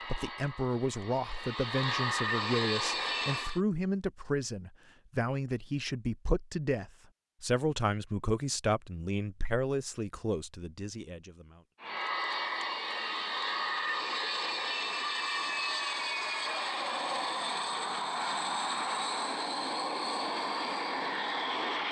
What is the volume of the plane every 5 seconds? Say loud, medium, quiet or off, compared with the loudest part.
loud, off, loud, loud, loud.